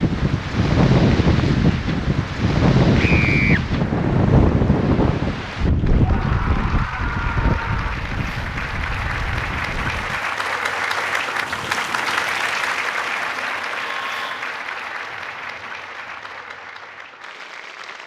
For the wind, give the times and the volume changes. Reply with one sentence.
You can hear the wind from 0.0 to 10.2 s, getting quieter.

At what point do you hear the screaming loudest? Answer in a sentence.
The volume of the screaming peaks at 3 seconds.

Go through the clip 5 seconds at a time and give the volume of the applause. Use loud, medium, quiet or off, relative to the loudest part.
quiet, medium, loud, medium.